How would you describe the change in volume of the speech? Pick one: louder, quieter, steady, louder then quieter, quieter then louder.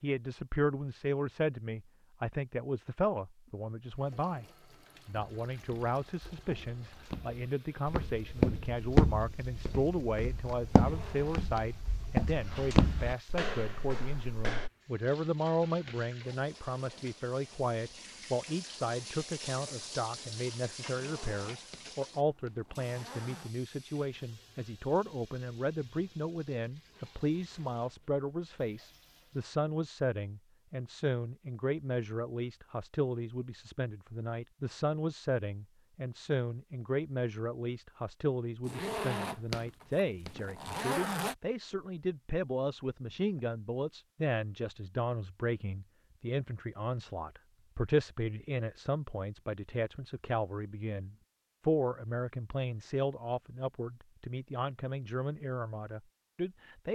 steady.